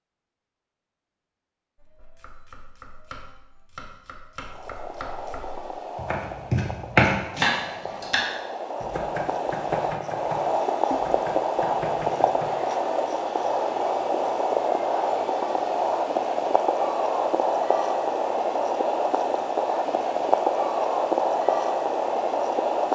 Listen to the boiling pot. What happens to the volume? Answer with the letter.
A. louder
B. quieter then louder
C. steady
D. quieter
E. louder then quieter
A.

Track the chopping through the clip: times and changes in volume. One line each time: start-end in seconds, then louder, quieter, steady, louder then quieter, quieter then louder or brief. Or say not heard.
1.8-12.8 louder then quieter.